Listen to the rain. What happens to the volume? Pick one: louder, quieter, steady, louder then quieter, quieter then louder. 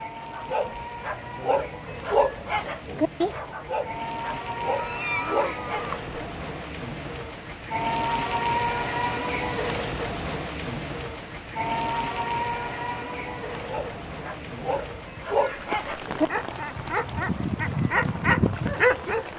louder then quieter.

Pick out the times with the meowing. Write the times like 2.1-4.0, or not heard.
4.8-6.2.